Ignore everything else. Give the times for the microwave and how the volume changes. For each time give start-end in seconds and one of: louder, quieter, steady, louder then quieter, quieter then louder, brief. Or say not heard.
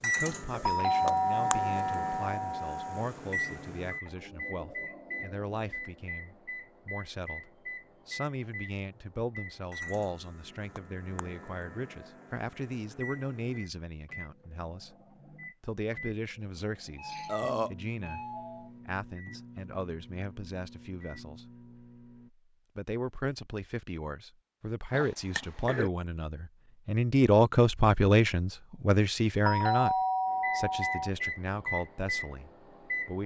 0.0-22.3 quieter
30.4-33.2 brief.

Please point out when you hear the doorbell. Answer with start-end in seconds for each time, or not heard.
0.7-3.0, 16.9-18.7, 29.4-31.1.